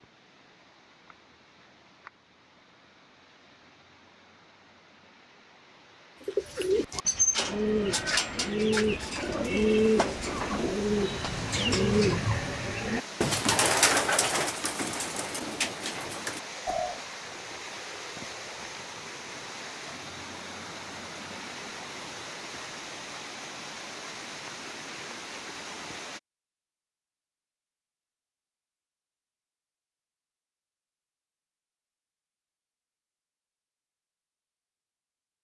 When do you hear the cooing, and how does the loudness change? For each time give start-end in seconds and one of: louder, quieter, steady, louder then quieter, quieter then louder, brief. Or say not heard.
6.2-16.9 quieter.